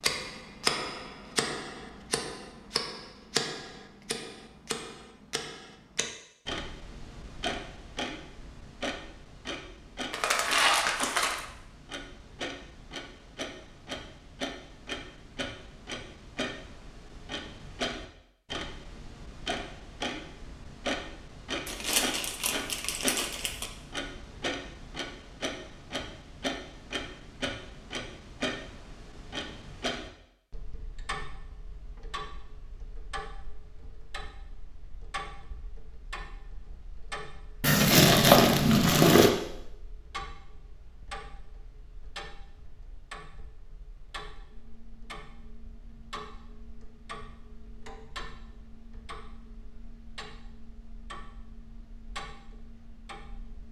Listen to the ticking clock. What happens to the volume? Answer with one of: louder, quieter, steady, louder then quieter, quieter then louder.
quieter.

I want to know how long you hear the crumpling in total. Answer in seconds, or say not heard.
5 s.